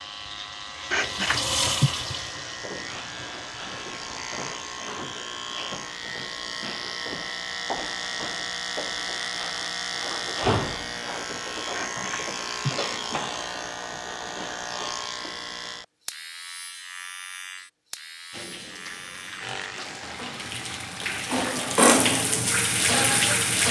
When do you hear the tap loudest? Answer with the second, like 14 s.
22 s.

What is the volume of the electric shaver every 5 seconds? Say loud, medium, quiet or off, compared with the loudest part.
medium, loud, loud, medium, medium.